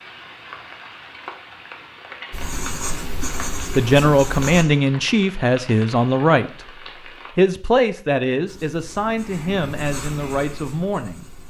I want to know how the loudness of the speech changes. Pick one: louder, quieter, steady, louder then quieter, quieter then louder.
quieter.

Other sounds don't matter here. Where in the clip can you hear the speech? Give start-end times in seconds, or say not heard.
3.8-11.3.